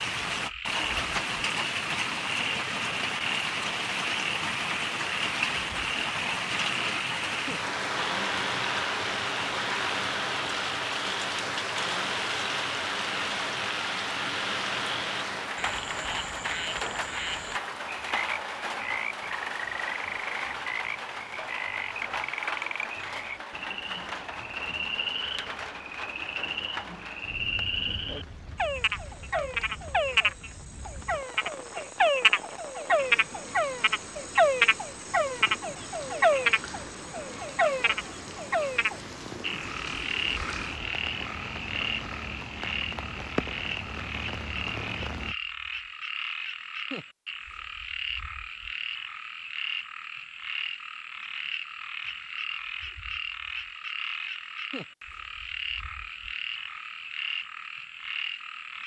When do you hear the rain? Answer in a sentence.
You can hear the rain from 0.0 to 45.4 s.